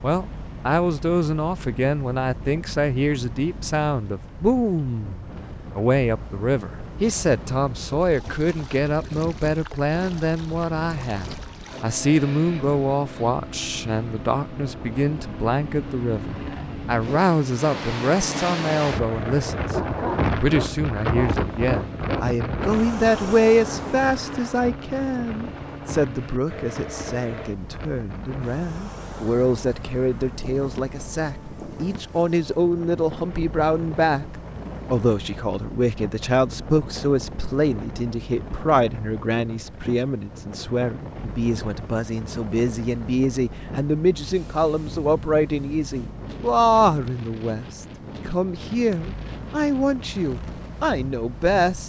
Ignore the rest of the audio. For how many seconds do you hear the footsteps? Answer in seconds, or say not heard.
not heard.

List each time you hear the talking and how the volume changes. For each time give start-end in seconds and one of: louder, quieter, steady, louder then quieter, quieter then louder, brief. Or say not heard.
0.0-51.8 steady.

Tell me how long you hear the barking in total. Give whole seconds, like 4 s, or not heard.
3 s.